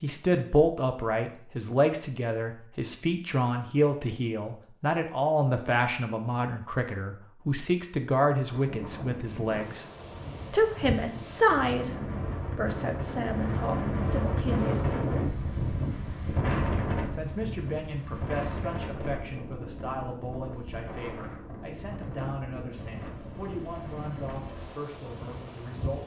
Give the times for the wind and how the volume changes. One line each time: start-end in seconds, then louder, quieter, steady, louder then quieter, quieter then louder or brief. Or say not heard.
8.3-26.0 louder then quieter.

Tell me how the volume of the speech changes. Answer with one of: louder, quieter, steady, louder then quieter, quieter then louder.
quieter.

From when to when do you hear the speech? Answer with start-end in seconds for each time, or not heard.
0.0-9.8, 10.5-15.1, 17.1-26.0.